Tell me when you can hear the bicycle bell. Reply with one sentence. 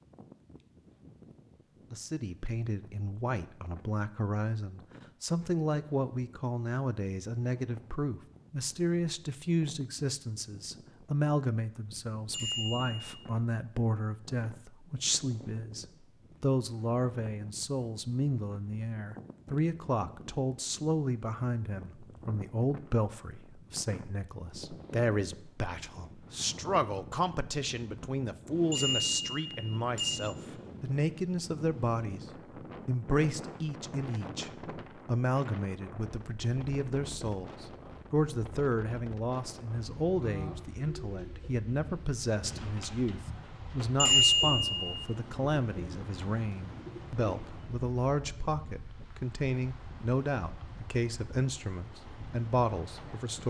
You can hear the bicycle bell from 12.3 to 13.1 s, from 28.7 to 30.2 s and from 44.0 to 45.0 s.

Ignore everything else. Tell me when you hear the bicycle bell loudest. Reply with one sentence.
The loudest moment of the bicycle bell is at 44 seconds.